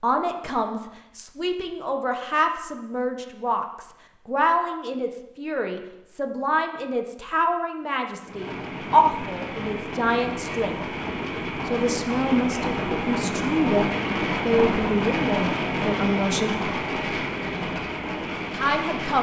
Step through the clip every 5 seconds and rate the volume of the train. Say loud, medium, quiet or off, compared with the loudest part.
off, medium, loud, loud.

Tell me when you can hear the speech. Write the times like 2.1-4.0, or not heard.
0.0-10.8, 11.7-16.6, 18.5-19.1.